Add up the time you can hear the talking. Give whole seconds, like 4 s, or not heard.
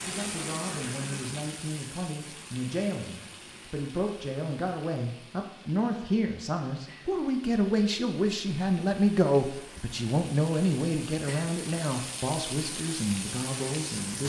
14 s.